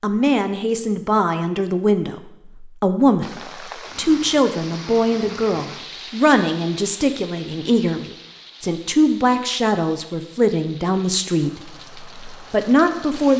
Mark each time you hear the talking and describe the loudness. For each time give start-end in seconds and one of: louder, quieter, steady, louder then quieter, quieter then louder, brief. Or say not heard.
0.0-13.3 steady.